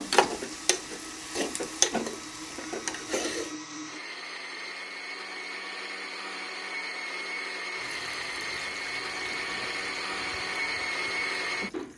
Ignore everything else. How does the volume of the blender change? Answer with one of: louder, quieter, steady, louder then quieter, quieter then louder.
louder.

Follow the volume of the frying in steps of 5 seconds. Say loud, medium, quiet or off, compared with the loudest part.
loud, quiet, quiet.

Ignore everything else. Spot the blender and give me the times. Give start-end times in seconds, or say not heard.
0.0-11.9.